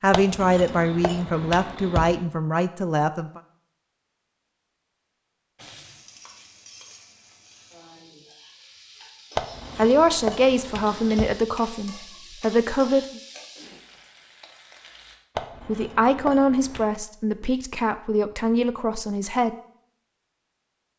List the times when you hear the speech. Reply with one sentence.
You can hear the speech from 0.0 to 3.4 s, from 9.8 to 13.2 s and from 15.7 to 19.6 s.